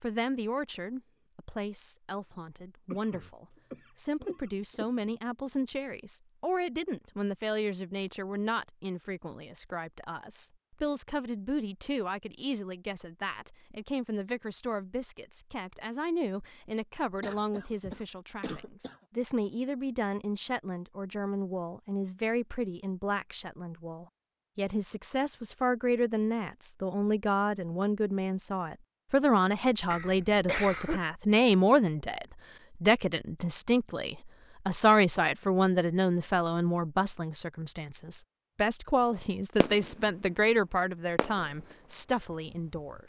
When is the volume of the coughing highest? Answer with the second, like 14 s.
31 s.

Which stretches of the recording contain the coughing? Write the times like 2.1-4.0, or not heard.
2.9-4.8, 17.2-18.9, 29.9-31.0.